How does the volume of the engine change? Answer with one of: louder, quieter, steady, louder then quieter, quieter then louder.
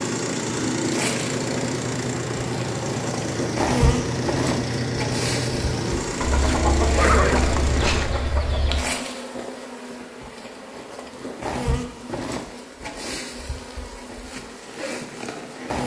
steady.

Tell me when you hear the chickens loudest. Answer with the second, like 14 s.
7 s.